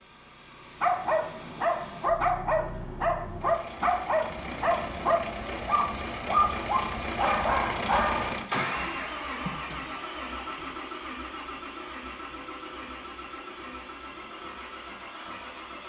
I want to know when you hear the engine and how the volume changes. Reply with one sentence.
You can hear the engine from 0.0 to 15.8 s, getting louder then quieter.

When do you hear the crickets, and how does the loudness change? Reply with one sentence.
The crickets can't be heard in this clip.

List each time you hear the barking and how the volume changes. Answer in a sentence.
You can hear the barking from 0.8 to 8.9 s, at a steady volume.